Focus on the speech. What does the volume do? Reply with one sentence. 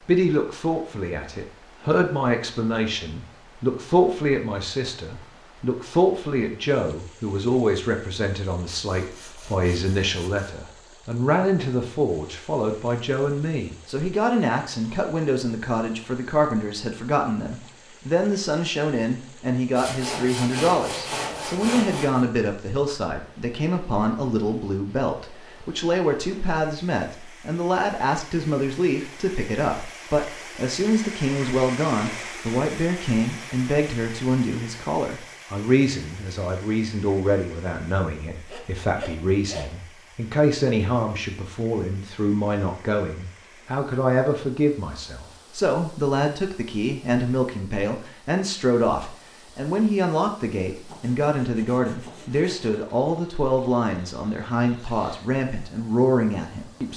The loudness of the speech stays about the same.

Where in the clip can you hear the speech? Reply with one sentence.
You can hear the speech from 0.1 to 56.9 s.